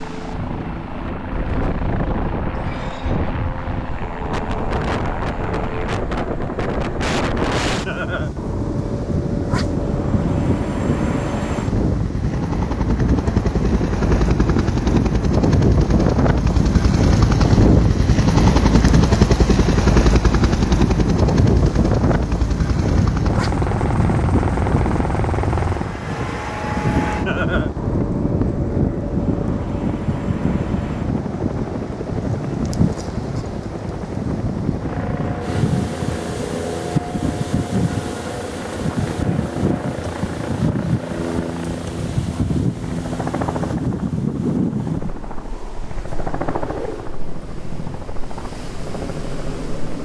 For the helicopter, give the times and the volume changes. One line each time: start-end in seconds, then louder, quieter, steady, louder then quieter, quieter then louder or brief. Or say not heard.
0.0-50.0 louder then quieter.